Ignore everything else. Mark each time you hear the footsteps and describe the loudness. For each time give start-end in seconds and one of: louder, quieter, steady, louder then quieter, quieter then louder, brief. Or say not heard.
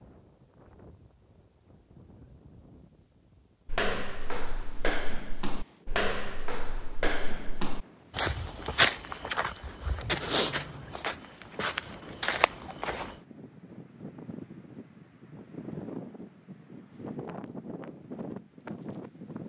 3.6-13.2 louder then quieter.